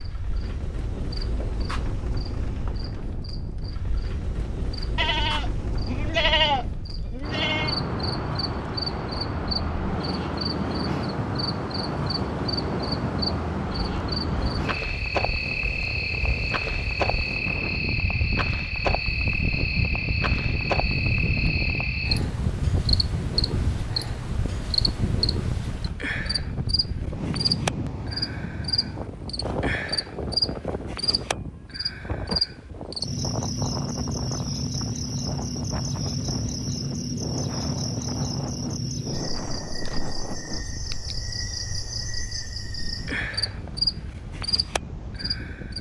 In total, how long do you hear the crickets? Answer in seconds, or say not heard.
46 s.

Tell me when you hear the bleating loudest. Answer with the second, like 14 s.
6 s.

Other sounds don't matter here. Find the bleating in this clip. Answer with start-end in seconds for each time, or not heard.
5.0-7.8.